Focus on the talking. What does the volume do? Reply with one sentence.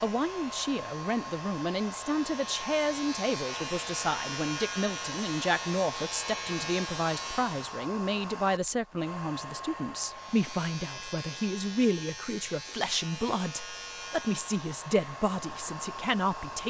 The loudness of the talking stays about the same.